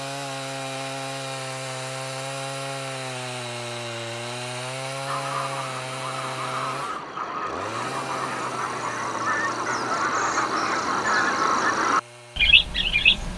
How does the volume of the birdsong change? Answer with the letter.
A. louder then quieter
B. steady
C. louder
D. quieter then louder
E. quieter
C.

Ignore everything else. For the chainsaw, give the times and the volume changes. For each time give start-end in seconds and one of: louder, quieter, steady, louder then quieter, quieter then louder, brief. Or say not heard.
0.0-13.3 quieter.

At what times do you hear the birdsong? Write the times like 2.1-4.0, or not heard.
5.0-13.3.